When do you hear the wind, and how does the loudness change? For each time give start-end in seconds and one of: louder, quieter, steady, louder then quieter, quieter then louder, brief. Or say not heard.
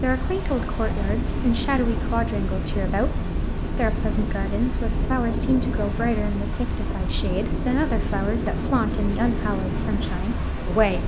0.0-11.0 steady.